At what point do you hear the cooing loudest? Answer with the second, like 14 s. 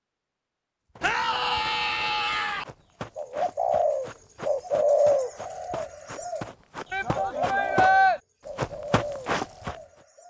5 s.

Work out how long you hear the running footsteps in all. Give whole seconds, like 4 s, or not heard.
8 s.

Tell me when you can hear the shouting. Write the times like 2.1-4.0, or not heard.
1.0-2.6, 6.9-8.2.